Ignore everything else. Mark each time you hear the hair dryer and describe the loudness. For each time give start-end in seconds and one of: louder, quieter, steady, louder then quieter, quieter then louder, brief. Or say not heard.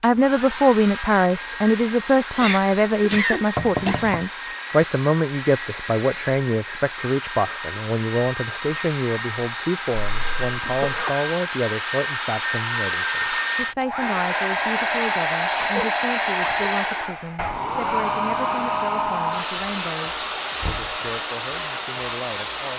0.0-22.7 louder.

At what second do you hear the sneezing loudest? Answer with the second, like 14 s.
3 s.